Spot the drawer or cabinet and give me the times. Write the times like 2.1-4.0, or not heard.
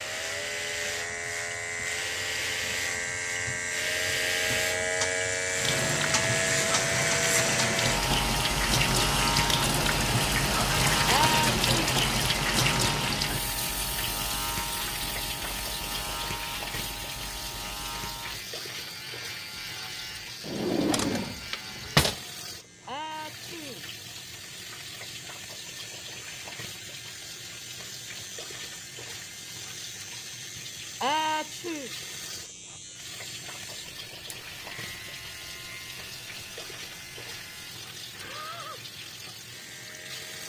20.4-22.2.